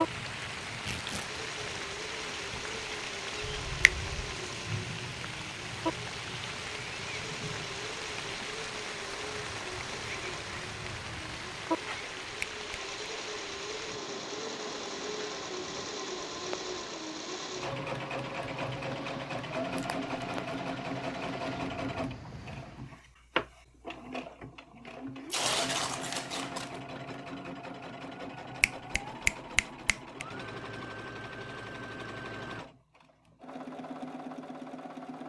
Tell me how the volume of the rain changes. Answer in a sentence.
The loudness of the rain goes down.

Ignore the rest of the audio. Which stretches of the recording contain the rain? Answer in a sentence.
You can hear the rain from 0.0 to 23.0 s.